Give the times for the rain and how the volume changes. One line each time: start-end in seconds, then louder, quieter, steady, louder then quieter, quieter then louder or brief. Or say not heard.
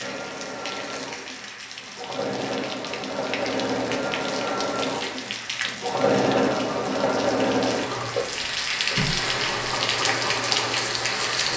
0.0-11.5 louder.